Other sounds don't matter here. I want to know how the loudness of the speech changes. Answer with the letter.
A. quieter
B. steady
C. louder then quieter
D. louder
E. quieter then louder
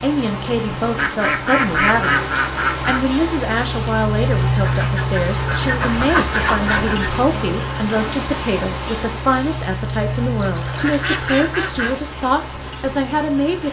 B.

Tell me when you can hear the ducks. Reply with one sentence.
You can hear the ducks from 0.9 to 3.0 s, from 4.6 to 7.1 s and from 10.3 to 12.1 s.